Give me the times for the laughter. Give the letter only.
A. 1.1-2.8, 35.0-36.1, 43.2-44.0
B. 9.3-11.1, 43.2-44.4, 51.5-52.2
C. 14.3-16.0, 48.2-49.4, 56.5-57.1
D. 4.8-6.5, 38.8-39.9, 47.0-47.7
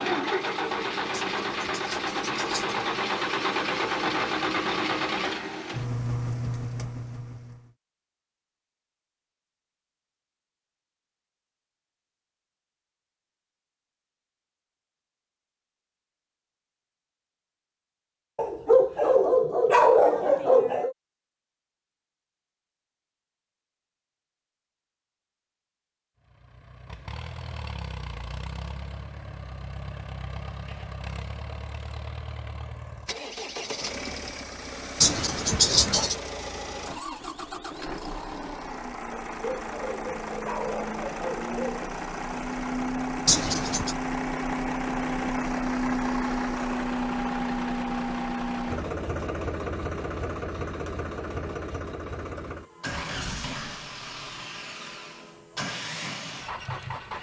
A.